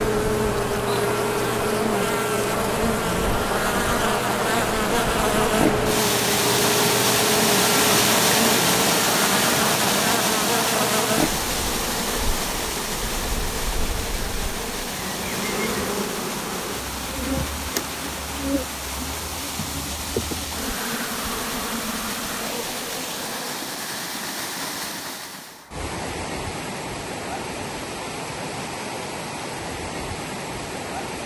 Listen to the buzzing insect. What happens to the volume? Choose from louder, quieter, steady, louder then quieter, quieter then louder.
quieter.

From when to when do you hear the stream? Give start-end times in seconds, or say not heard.
0.1-31.2.